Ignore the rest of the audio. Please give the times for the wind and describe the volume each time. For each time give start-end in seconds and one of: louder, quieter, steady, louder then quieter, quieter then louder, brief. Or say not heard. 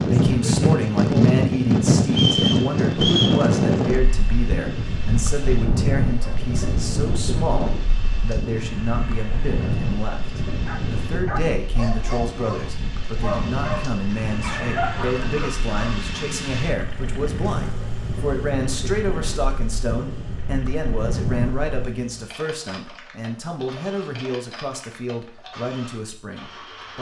0.0-21.9 quieter.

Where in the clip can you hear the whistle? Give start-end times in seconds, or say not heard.
2.1-3.4.